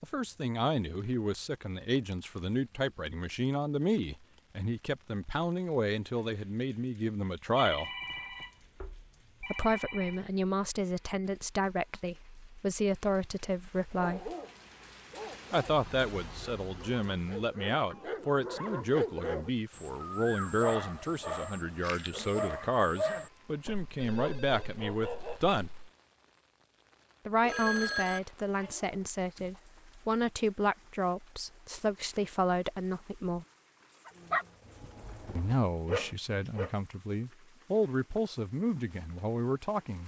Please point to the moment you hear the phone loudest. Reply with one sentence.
The loudest moment of the phone is at 28 seconds.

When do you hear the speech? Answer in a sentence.
You can hear the speech from 0.0 to 7.9 s, from 9.4 to 14.3 s, from 15.5 to 25.7 s, from 27.2 to 33.5 s and from 35.4 to 40.0 s.